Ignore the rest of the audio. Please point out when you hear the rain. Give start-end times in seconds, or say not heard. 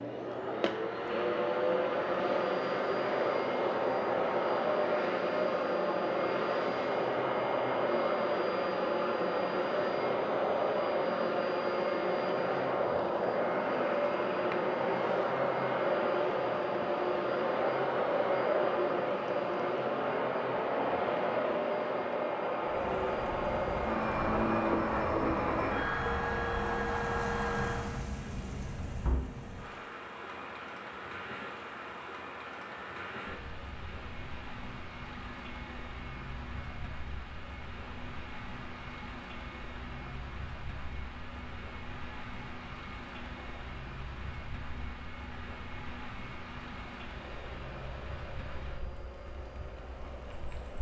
22.6-50.7.